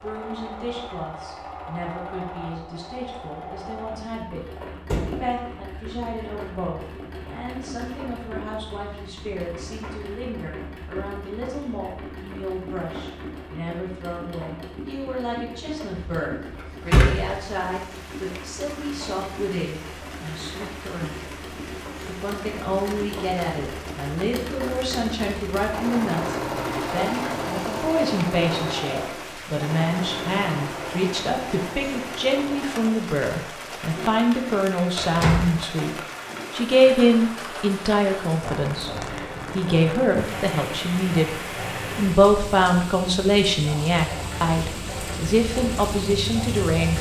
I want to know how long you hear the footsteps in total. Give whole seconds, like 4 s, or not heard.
not heard.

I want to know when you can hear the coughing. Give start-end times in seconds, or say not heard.
not heard.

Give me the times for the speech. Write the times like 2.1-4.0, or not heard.
0.0-21.2, 22.0-35.9, 36.5-38.9, 39.5-41.3, 42.0-46.9.